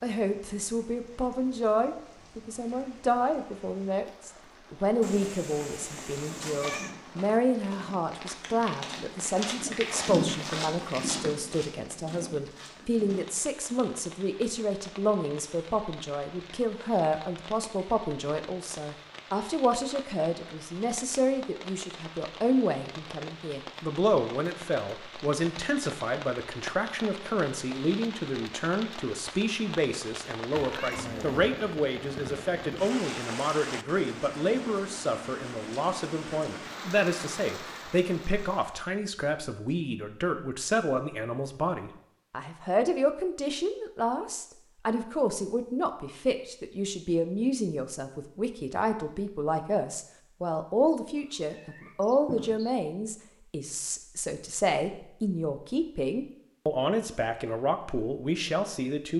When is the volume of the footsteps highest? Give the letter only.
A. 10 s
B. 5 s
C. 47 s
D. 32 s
A.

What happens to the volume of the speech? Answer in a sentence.
The volume of the speech stays about the same.